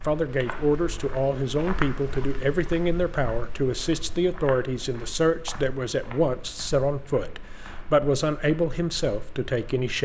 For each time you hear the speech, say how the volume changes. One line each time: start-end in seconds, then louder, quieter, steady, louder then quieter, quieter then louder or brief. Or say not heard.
0.1-10.0 steady.